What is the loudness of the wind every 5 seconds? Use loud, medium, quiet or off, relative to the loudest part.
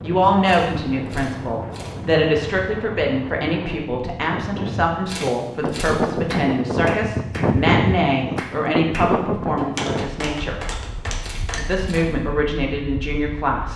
medium, loud, quiet.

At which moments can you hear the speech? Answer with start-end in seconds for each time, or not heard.
0.0-10.6, 11.6-13.7.